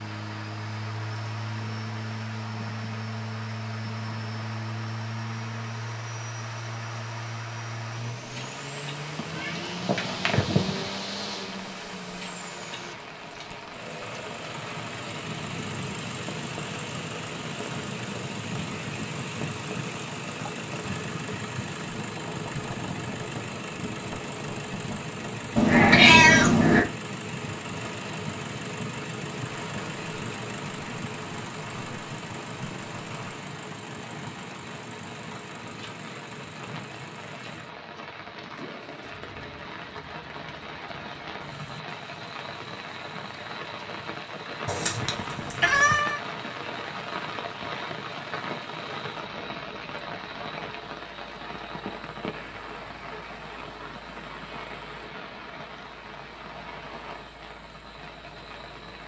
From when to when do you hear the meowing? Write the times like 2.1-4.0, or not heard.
9.2-10.8, 25.6-26.9, 44.6-46.2.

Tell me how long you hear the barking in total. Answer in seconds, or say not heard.
not heard.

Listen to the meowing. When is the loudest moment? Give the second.
26 s.